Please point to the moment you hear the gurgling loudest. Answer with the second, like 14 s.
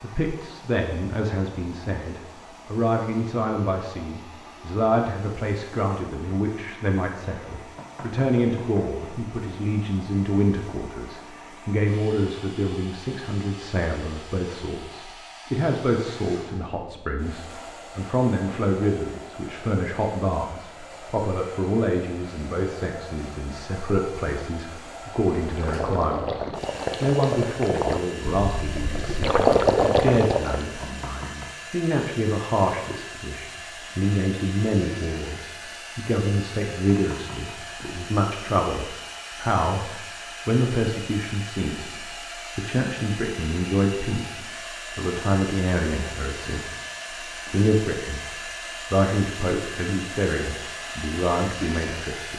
30 s.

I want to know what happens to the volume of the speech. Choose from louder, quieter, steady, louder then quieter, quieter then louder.
steady.